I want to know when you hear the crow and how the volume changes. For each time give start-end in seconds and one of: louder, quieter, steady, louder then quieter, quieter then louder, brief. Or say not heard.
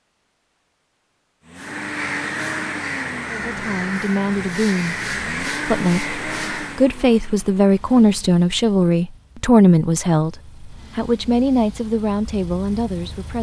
1.6-6.8 steady.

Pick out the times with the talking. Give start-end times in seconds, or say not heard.
3.2-13.3.